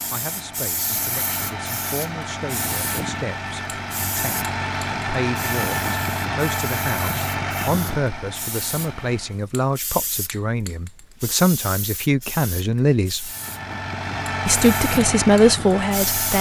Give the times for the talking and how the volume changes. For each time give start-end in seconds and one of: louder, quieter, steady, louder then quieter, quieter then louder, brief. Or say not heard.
0.1-13.3 louder
14.4-16.3 brief.